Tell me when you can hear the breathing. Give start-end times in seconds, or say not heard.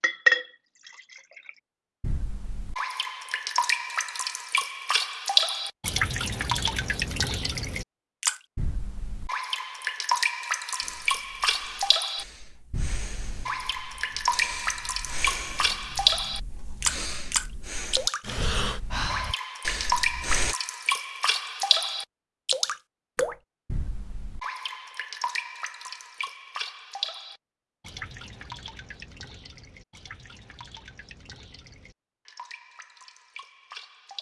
10.8-20.6.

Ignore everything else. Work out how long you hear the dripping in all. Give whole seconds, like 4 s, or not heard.
34 s.